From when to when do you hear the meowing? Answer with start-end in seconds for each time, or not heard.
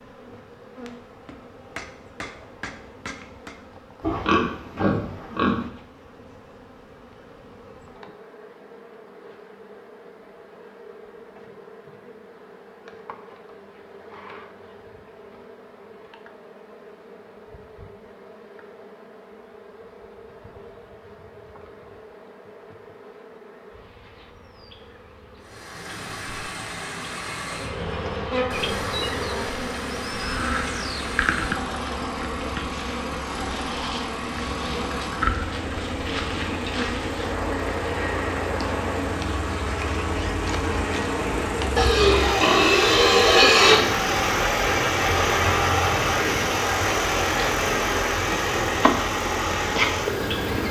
not heard.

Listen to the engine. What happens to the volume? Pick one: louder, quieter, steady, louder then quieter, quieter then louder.
louder.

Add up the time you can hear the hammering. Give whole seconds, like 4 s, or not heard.
3 s.